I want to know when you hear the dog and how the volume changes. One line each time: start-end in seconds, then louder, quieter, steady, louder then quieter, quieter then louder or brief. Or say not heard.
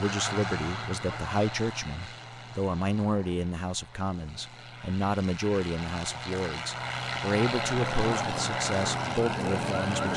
not heard.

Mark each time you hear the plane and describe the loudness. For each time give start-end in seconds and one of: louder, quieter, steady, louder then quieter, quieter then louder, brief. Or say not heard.
0.0-10.1 quieter then louder.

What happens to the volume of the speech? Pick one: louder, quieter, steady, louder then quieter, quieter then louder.
steady.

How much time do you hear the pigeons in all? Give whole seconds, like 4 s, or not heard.
not heard.